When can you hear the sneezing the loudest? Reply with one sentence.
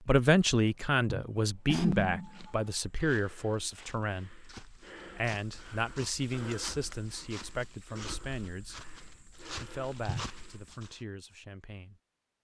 The loudest moment of the sneezing is at 2 seconds.